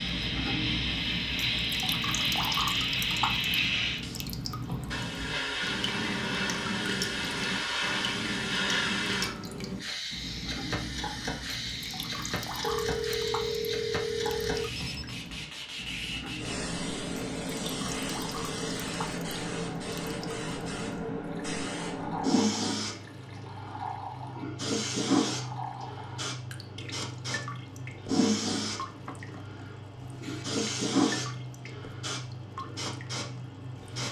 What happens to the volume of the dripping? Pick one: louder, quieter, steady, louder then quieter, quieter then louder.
quieter.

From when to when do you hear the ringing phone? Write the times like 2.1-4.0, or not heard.
12.6-15.2.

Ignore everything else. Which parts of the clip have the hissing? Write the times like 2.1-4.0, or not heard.
0.0-34.0.